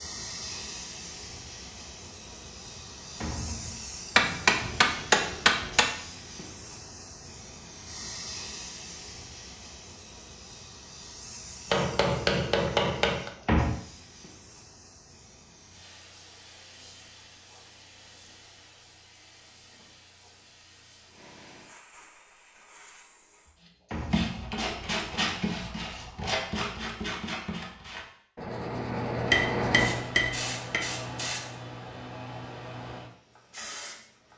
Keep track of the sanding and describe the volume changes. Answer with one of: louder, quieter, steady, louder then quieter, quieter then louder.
quieter then louder.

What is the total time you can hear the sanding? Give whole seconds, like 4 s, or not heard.
6 s.